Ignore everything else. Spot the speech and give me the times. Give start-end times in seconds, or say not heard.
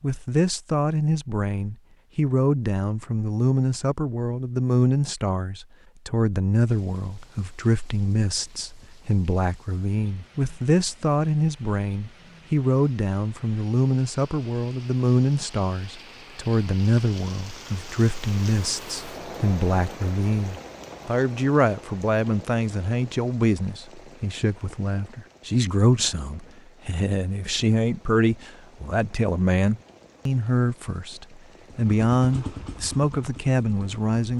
0.0-34.3.